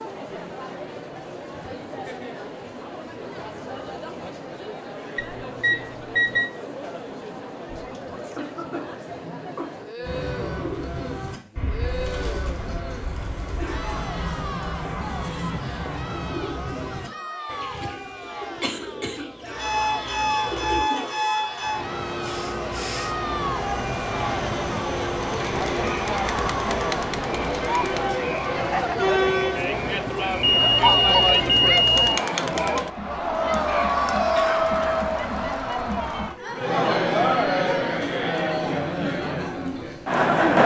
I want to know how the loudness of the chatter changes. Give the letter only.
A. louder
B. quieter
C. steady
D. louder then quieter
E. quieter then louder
A.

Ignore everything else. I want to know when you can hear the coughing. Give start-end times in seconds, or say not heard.
7.9-9.7, 17.8-19.2, 33.6-35.0.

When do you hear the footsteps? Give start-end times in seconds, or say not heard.
not heard.